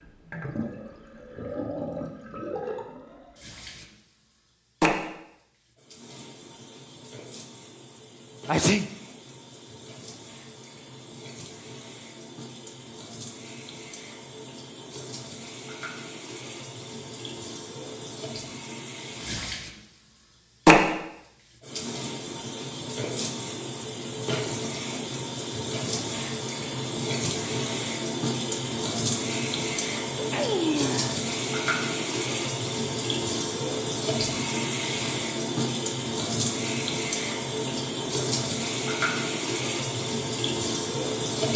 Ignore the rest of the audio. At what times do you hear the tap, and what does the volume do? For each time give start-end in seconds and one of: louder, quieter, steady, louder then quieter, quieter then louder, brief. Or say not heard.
0.0-41.5 quieter then louder.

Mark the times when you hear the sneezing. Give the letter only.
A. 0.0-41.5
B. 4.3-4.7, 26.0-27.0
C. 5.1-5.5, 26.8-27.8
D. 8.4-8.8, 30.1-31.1
D.